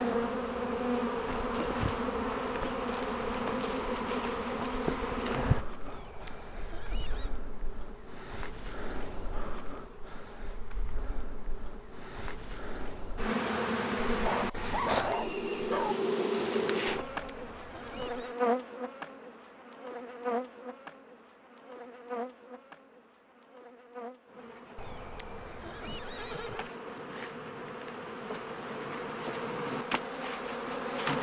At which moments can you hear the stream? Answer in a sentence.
The stream can't be heard in this clip.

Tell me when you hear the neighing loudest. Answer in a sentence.
The volume of the neighing peaks at 26 seconds.